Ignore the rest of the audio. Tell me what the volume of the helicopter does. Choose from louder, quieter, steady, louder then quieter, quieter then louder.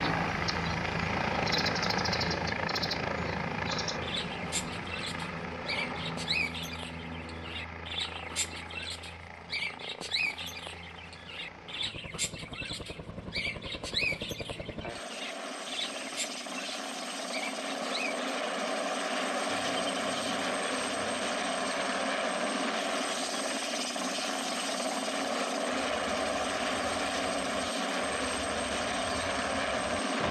quieter then louder.